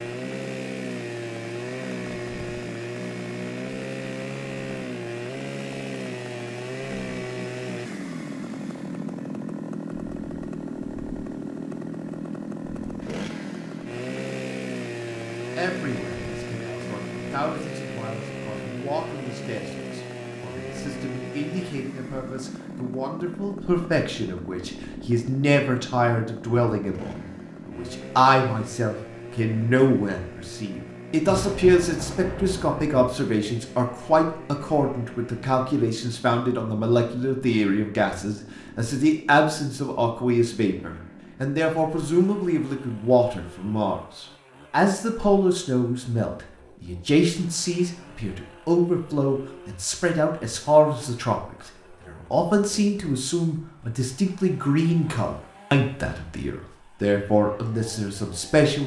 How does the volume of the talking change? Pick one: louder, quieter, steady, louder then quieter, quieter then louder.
louder.